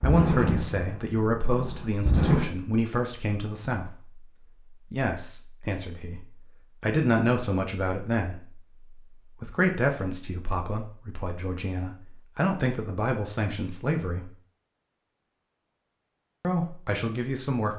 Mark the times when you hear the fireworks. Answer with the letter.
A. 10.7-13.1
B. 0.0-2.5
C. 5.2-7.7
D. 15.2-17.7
B.